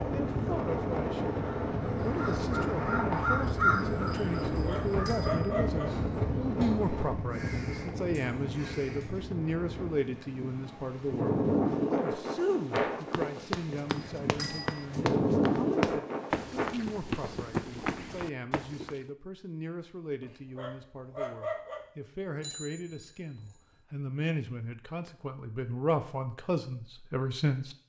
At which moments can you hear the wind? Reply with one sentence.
The wind can be heard from 0.0 to 16.6 s.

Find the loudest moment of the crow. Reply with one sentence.
The volume of the crow peaks at 4 seconds.